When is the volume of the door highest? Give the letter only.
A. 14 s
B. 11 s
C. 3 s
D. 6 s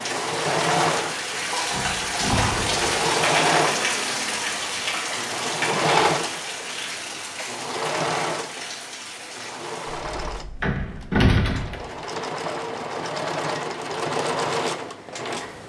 B.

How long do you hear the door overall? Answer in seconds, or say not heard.
2 s.